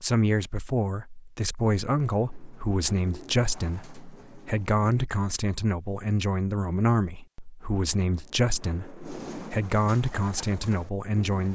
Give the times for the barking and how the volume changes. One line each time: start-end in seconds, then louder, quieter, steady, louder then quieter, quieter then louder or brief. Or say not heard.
not heard.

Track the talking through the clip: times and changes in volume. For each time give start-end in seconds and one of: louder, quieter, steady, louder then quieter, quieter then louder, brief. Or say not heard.
0.0-11.5 steady.